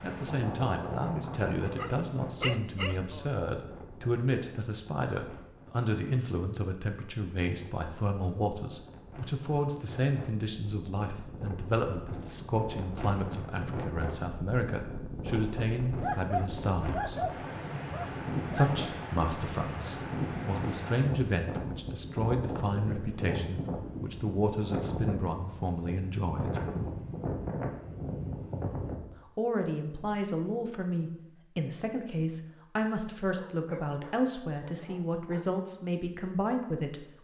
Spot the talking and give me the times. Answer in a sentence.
The talking can be heard from 0.0 to 17.2 s, from 18.6 to 26.6 s and from 29.2 to 37.2 s.